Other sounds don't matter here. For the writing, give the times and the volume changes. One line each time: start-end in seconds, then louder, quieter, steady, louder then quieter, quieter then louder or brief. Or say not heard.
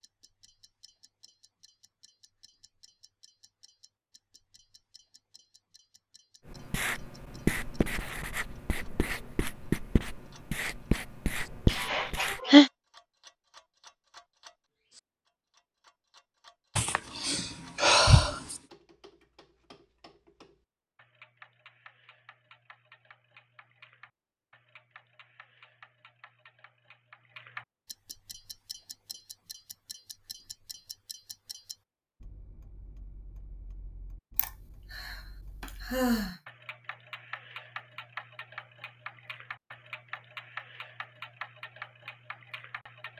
6.5-12.4 quieter then louder.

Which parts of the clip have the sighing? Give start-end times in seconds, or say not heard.
11.7-12.7, 16.8-18.6, 34.4-36.4.